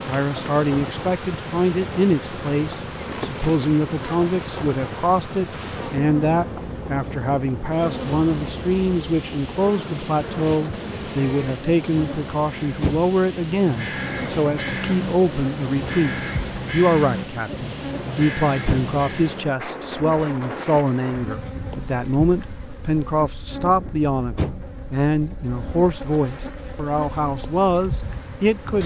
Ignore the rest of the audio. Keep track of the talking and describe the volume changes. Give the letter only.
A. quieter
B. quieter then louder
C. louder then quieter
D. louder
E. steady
E.